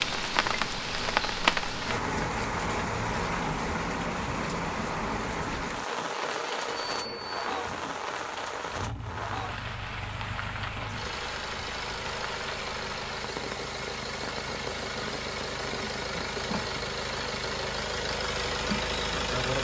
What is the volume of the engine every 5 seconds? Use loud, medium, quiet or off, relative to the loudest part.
medium, medium, medium, loud.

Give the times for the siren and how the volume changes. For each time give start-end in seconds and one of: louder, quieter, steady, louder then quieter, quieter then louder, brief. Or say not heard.
not heard.